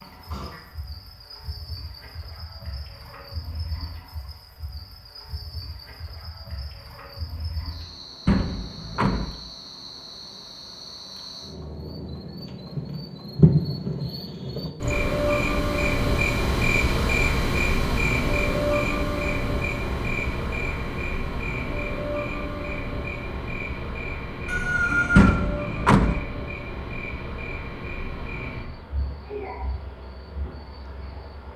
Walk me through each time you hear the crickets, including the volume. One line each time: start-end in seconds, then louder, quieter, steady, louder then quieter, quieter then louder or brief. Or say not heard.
0.0-31.5 louder then quieter.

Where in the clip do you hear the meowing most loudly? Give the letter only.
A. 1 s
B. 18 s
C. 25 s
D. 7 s
C.